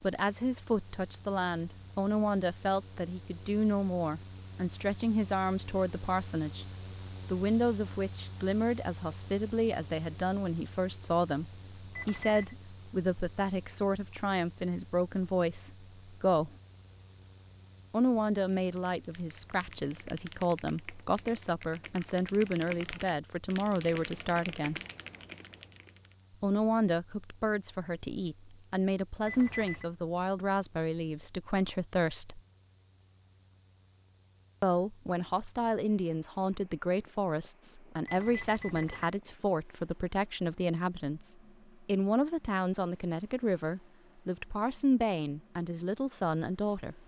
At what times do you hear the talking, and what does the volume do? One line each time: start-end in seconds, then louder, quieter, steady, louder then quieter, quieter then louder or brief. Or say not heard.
0.0-6.7 steady
7.2-16.5 steady
17.9-24.8 steady
26.4-32.4 steady
34.6-47.0 steady.